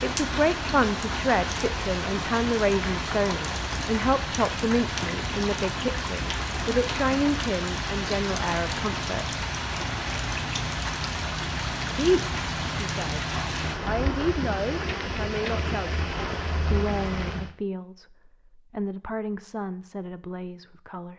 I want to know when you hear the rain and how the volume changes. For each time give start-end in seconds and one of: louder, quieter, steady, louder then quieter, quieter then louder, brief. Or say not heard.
0.0-17.5 steady.